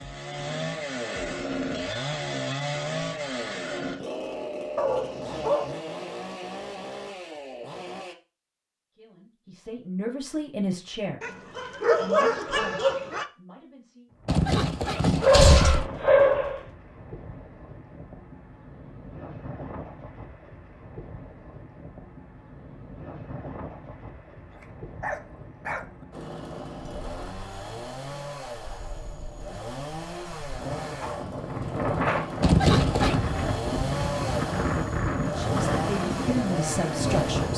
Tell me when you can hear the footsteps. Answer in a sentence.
The footsteps can't be heard in this clip.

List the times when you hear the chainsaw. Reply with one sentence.
The chainsaw can be heard from 0.0 to 8.2 s and from 26.1 to 37.5 s.